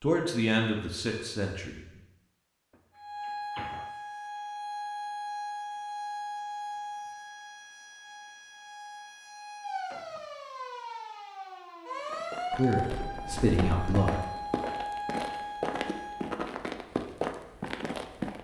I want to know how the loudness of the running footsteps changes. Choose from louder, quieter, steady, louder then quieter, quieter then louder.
louder.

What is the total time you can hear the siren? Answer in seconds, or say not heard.
13 s.